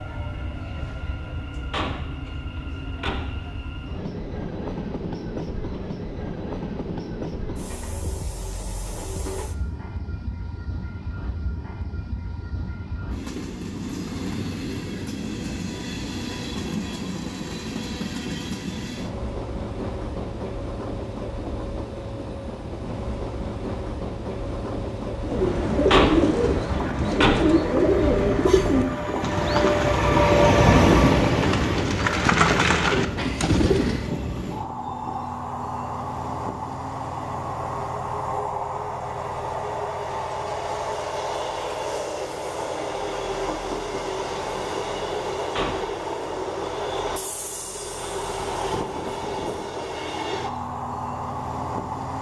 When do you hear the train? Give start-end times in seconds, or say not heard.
0.0-52.1.